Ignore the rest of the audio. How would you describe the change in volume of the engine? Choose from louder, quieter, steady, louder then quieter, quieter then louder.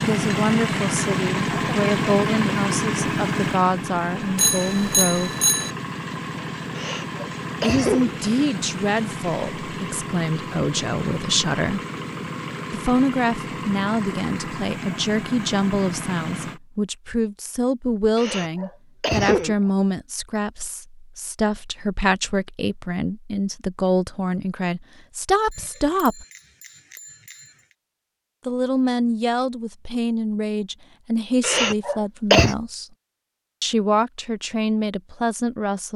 quieter.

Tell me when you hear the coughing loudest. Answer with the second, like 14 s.
32 s.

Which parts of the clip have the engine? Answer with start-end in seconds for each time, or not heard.
0.0-16.6.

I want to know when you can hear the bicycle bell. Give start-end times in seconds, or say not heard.
4.3-5.8, 25.5-27.6.